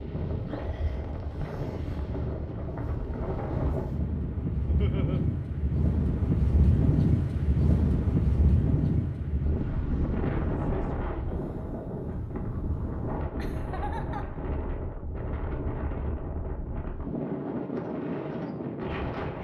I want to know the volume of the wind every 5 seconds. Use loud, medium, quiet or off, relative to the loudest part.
medium, loud, medium, medium.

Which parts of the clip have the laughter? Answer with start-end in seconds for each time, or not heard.
4.7-5.2, 13.3-14.4.